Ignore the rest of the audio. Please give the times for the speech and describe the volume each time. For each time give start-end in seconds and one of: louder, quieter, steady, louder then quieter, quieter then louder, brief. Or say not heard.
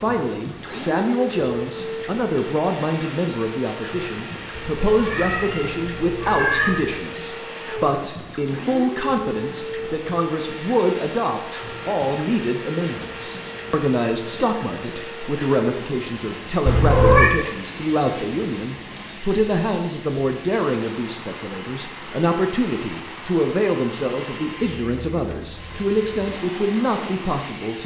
0.0-27.8 steady.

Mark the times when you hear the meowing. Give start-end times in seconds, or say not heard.
4.5-7.0, 16.6-17.3.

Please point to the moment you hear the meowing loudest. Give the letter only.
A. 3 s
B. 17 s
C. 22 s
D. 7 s
B.